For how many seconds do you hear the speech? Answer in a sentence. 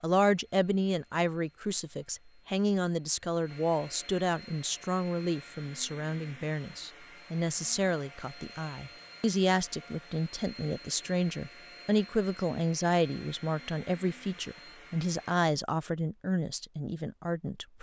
You can hear the speech for 18 seconds altogether.